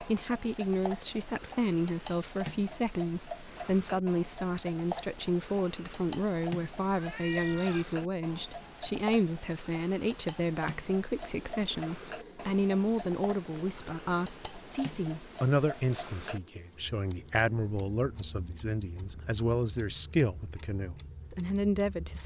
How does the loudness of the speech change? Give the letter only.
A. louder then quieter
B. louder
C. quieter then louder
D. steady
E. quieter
D.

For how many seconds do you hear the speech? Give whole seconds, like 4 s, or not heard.
22 s.